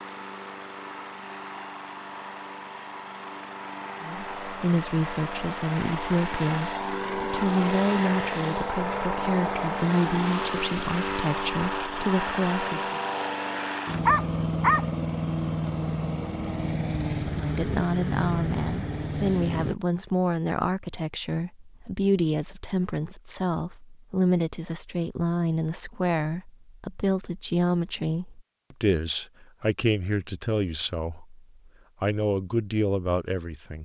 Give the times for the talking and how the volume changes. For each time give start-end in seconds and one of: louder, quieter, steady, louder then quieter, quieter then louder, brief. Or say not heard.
4.0-13.0 steady
17.4-33.8 steady.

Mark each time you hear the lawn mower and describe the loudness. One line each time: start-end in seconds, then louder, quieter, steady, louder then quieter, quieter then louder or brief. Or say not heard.
0.0-19.8 louder.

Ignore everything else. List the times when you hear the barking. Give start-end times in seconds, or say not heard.
14.1-14.8.